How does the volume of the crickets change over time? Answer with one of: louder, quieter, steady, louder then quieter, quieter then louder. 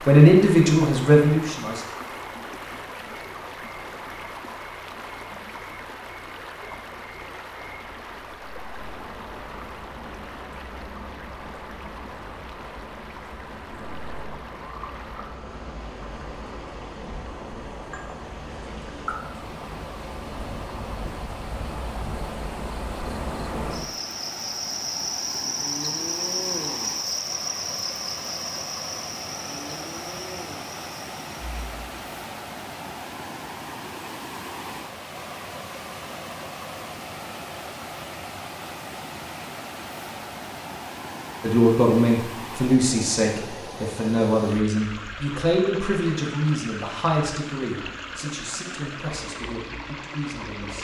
louder.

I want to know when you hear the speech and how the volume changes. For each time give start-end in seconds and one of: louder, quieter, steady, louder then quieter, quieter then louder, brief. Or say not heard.
0.1-1.9 brief
41.4-50.8 quieter.